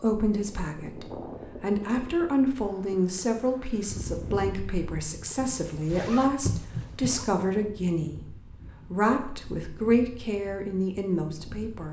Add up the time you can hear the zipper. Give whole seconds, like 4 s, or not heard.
2 s.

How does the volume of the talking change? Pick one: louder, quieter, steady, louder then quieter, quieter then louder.
steady.